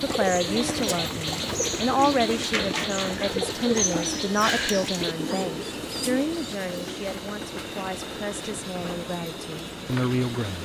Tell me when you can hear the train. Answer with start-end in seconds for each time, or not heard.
0.0-10.6.